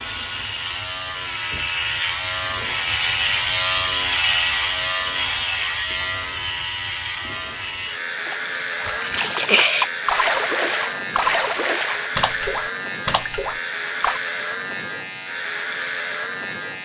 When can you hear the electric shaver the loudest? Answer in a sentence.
The loudest moment of the electric shaver is at 4 seconds.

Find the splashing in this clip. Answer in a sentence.
The splashing can be heard from 8.2 to 14.2 s.